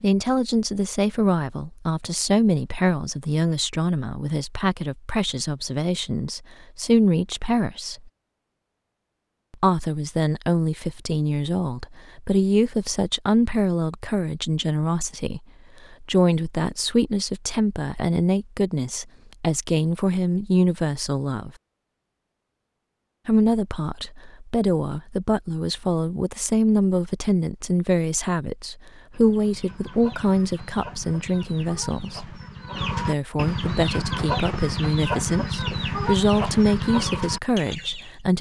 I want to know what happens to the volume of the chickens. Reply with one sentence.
The volume of the chickens goes up.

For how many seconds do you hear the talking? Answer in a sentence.
The talking can be heard for 34 seconds in total.